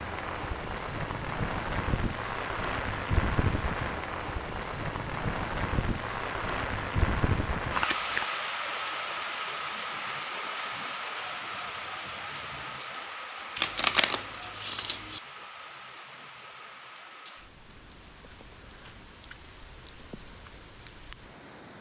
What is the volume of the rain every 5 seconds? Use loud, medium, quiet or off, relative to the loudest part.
loud, loud, medium, quiet, quiet.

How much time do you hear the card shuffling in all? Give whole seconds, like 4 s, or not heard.
2 s.